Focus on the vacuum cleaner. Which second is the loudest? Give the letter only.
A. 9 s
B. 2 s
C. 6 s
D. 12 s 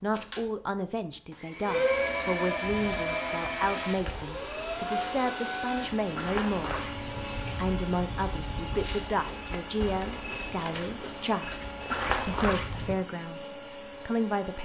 B.